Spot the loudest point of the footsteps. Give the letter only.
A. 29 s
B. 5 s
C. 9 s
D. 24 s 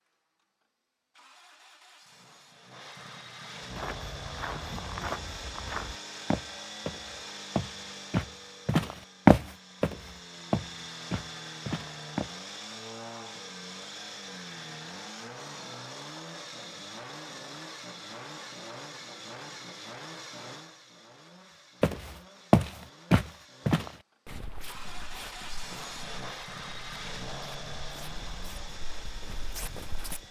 C.